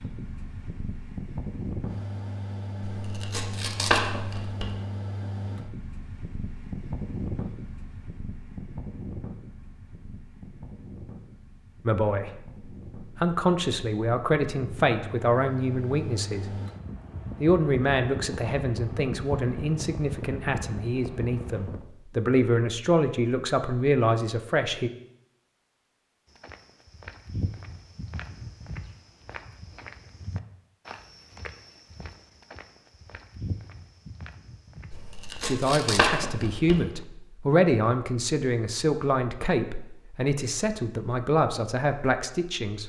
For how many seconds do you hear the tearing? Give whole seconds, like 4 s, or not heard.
4 s.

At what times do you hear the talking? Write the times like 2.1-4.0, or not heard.
11.8-16.5, 17.4-24.9, 35.4-42.8.